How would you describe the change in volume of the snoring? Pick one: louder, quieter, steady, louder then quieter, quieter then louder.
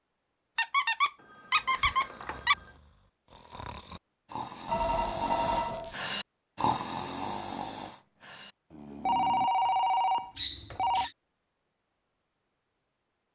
louder then quieter.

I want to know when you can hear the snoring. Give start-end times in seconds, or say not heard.
1.5-9.5.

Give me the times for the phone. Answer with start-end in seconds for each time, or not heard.
1.2-2.8, 4.7-6.0, 9.1-11.1.